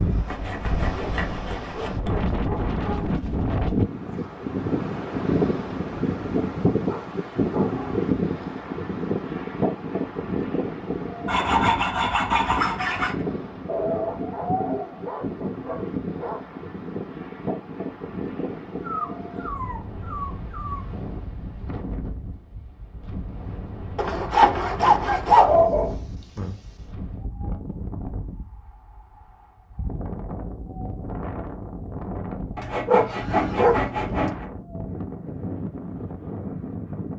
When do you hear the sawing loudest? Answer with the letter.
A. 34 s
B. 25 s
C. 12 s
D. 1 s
B.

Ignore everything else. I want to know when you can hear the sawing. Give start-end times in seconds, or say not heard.
0.2-2.2, 11.2-13.2, 23.9-25.6, 32.5-34.5.